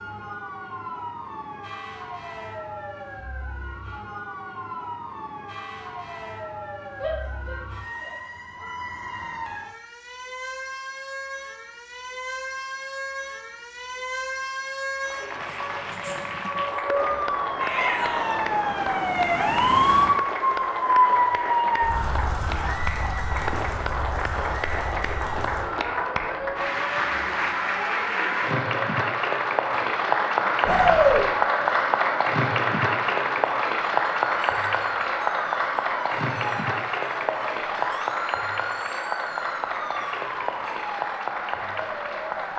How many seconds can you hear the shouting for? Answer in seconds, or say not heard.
3 s.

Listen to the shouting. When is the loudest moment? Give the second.
31 s.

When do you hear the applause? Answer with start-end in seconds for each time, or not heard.
15.0-42.5.